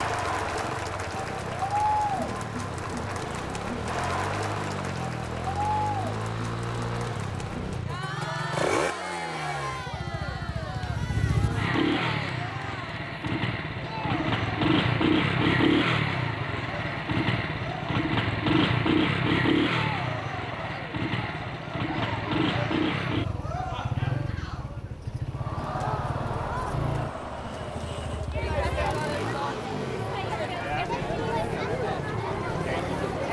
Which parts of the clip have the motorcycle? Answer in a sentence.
The motorcycle can be heard from 0.0 to 33.2 s.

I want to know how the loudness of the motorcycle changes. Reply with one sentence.
The volume of the motorcycle goes up, then down.